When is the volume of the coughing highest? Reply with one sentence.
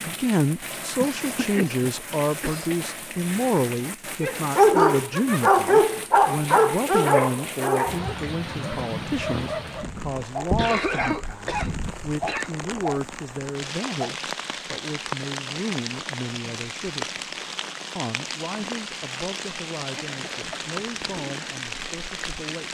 The volume of the coughing peaks at 11 seconds.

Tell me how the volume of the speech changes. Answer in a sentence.
The loudness of the speech goes down.